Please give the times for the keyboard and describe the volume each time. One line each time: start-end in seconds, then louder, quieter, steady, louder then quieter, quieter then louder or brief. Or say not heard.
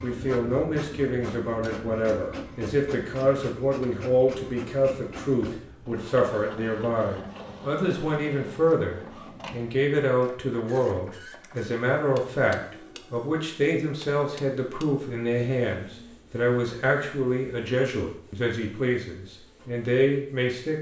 not heard.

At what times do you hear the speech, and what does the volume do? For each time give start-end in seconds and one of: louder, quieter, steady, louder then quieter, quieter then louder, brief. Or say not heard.
0.0-20.7 steady.